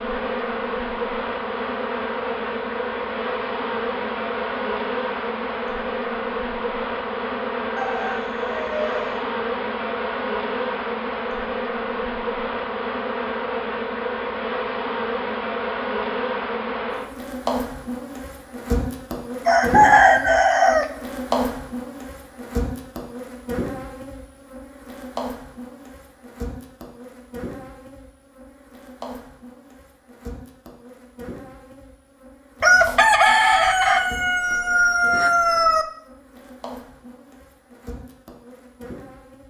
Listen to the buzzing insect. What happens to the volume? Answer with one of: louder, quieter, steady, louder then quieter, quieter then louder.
quieter.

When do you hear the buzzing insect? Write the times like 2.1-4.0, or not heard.
0.0-39.4.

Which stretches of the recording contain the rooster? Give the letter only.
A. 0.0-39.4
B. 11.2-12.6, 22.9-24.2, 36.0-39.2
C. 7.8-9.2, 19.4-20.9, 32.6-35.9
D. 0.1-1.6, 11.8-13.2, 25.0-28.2
C.